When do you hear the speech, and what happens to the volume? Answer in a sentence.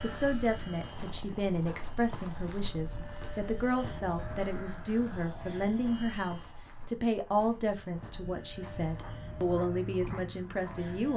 The speech can be heard from 0.0 to 11.1 s, at a steady volume.